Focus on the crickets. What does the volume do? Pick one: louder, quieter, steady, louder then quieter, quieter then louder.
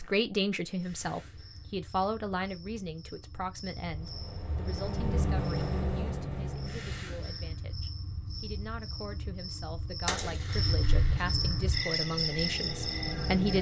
louder.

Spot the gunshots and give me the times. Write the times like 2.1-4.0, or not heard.
10.1-11.3.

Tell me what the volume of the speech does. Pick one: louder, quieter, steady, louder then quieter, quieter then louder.
quieter then louder.